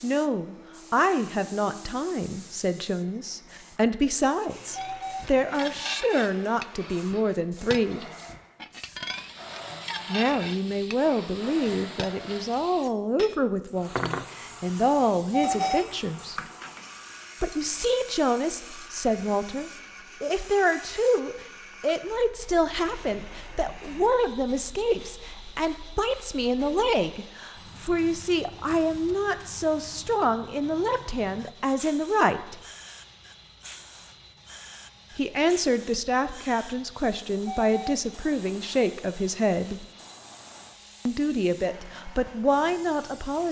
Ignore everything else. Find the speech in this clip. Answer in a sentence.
You can hear the speech from 0.0 to 8.1 s, from 10.1 to 16.4 s, from 17.4 to 32.6 s, from 35.1 to 39.9 s and from 41.0 to 43.4 s.